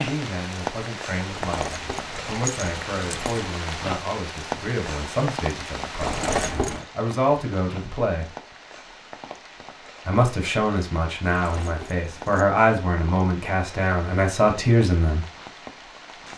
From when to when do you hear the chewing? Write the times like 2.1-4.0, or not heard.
not heard.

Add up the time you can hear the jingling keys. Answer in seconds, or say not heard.
4 s.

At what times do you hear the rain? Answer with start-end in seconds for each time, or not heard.
0.0-16.3.